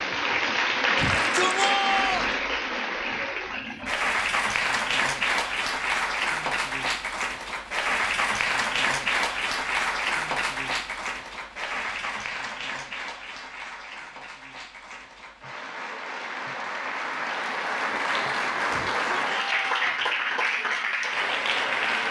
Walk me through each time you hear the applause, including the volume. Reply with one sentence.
You can hear the applause from 0.0 to 22.0 s, getting quieter then louder.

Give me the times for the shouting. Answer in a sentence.
You can hear the shouting from 0.9 to 2.4 s and from 18.6 to 20.1 s.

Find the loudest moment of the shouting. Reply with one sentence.
The loudest moment of the shouting is at 2 seconds.